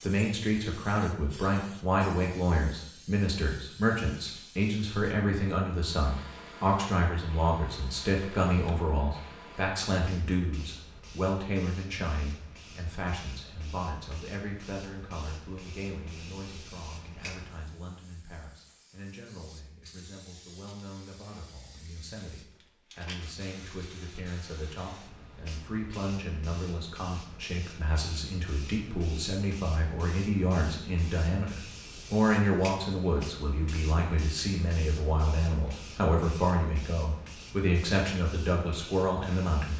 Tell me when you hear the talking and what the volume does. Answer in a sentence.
The talking can be heard from 0.0 to 39.7 s, getting quieter then louder.